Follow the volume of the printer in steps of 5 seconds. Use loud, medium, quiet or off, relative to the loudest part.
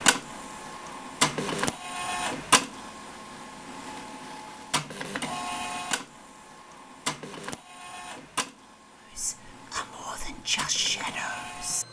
loud, medium, medium.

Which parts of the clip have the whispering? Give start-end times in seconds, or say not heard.
9.1-11.8.